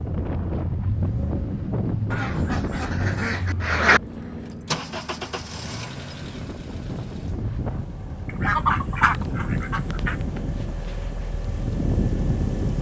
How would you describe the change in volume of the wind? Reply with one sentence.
The volume of the wind goes down, then up.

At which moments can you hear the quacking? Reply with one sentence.
The quacking can be heard from 2.1 to 4.0 s and from 8.2 to 10.2 s.